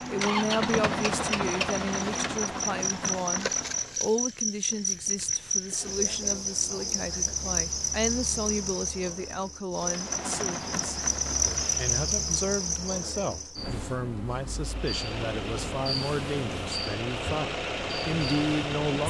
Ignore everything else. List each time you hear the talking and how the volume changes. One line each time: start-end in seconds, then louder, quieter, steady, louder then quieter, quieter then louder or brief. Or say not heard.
0.1-19.0 steady.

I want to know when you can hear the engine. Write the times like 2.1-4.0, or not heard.
0.0-4.0, 9.8-12.1, 14.6-19.0.